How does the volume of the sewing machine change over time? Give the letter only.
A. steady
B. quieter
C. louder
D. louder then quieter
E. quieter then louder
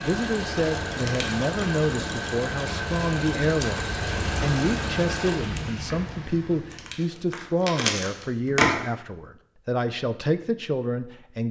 A.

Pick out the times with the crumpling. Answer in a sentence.
You can hear the crumpling from 0.9 to 1.4 s and from 6.7 to 8.7 s.